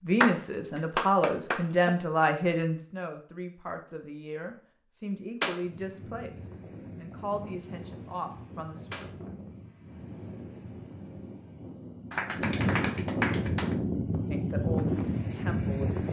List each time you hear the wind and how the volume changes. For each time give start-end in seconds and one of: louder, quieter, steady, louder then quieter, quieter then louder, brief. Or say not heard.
5.6-16.0 louder.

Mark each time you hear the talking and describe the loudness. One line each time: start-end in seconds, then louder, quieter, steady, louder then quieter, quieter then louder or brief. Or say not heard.
0.0-8.9 quieter
14.3-16.0 brief.